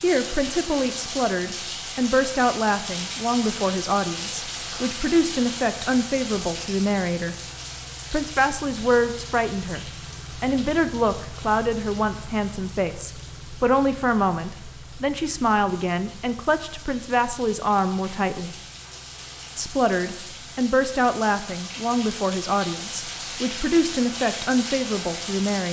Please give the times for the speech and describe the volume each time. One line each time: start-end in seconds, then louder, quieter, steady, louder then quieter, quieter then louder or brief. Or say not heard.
0.0-7.3 steady
8.1-18.6 steady
19.6-25.6 steady.